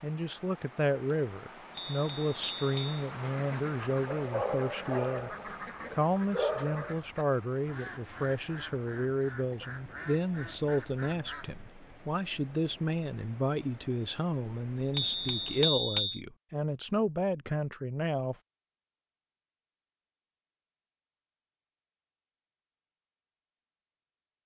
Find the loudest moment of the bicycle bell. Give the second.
16 s.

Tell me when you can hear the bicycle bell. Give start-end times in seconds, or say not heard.
1.8-3.0, 14.9-16.2.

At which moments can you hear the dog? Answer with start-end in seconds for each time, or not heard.
4.0-7.0.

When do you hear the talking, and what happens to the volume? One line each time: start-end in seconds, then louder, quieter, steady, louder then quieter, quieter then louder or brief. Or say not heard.
0.0-18.4 steady.